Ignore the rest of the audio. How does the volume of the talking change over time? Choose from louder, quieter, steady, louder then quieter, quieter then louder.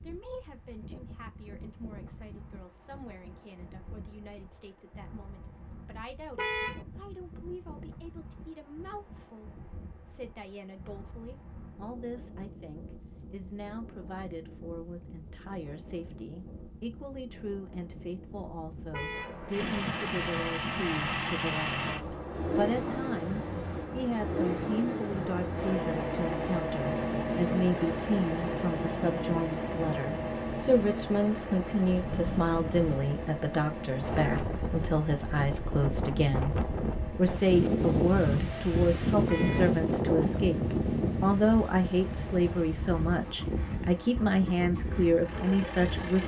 louder.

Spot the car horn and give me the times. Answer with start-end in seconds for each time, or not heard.
6.3-6.8, 18.9-19.4, 39.2-39.8.